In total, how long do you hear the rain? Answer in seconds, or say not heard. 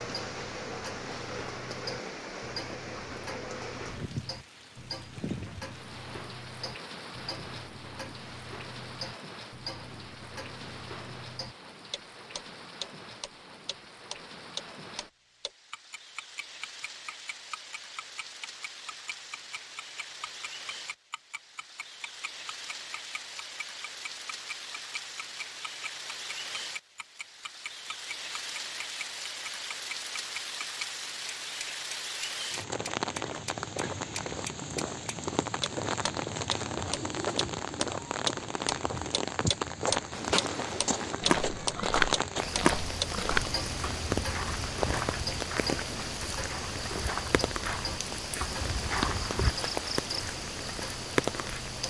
52 s.